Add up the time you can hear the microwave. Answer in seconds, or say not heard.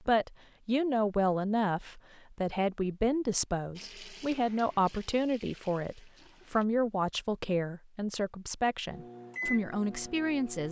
2 s.